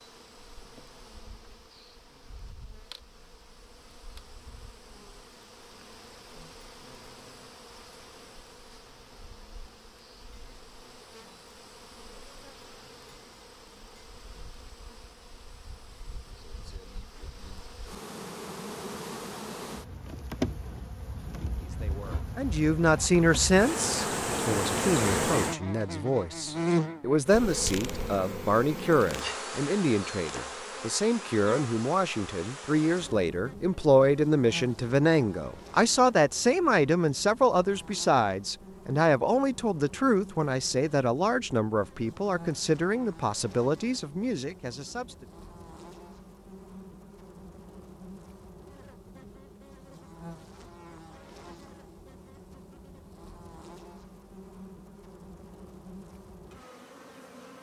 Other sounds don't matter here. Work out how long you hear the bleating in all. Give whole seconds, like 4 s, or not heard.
not heard.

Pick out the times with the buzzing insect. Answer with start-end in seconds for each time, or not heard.
0.0-57.5.